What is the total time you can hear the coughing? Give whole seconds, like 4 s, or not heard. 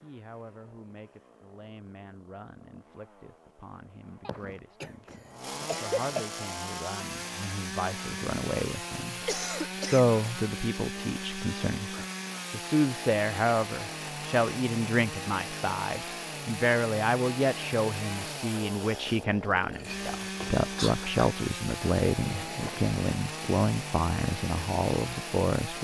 5 s.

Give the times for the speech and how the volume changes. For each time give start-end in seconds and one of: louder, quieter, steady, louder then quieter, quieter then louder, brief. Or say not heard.
0.0-25.7 louder.